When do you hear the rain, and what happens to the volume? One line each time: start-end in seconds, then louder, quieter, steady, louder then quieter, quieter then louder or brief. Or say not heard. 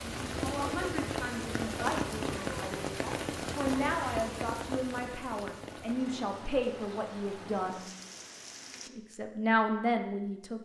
0.0-8.9 quieter.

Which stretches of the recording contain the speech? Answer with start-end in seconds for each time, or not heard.
0.0-7.8, 8.9-10.5.